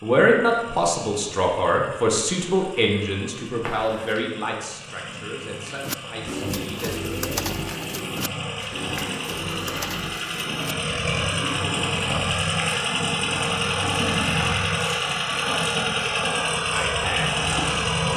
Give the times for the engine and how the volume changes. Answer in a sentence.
You can hear the engine from 0.0 to 18.1 s, getting louder.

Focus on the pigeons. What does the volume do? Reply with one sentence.
The loudness of the pigeons goes down.